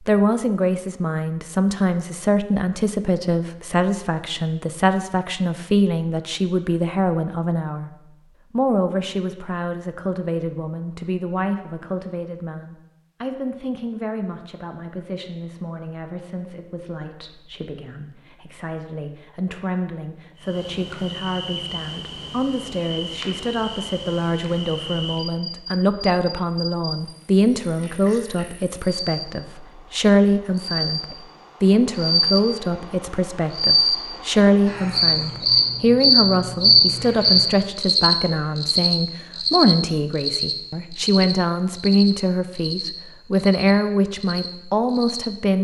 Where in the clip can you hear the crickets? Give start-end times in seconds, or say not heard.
20.4-45.6.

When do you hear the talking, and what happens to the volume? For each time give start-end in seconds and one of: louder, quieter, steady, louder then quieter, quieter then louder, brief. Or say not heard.
0.1-7.9 steady
8.5-45.6 louder.